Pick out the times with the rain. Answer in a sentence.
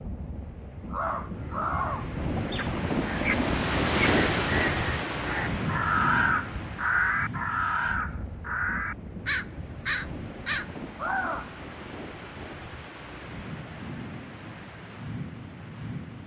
You can hear the rain from 0.0 to 16.2 s.